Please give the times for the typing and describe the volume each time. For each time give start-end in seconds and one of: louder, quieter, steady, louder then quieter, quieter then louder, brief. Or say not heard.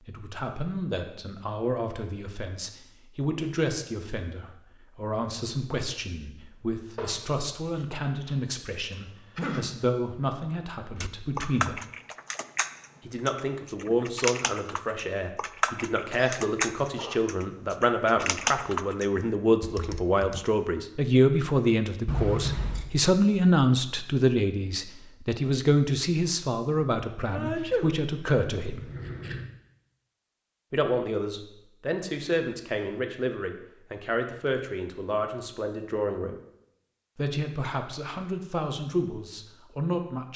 10.9-20.4 steady.